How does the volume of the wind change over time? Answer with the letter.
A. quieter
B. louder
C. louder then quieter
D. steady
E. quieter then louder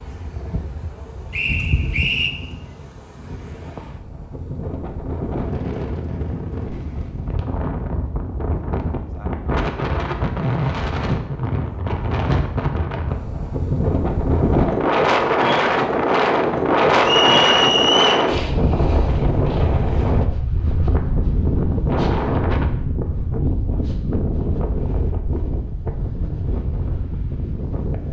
C.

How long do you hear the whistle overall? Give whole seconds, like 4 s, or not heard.
2 s.